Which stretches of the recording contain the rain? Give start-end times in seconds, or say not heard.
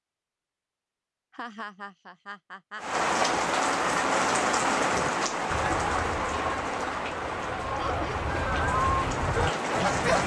2.8-10.2.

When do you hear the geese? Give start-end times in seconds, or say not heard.
4.9-10.2.